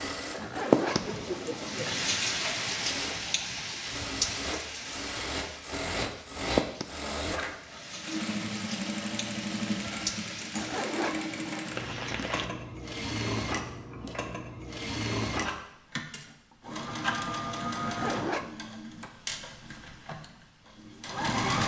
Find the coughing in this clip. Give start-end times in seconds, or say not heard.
0.9-2.1.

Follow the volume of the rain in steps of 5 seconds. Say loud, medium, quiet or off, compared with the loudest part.
loud, medium, medium, off, off.